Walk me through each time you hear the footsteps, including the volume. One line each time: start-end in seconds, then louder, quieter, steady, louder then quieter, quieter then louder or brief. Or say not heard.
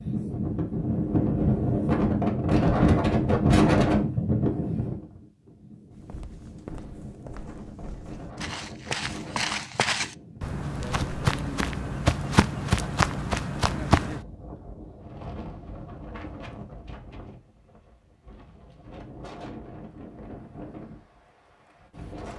5.9-14.2 louder.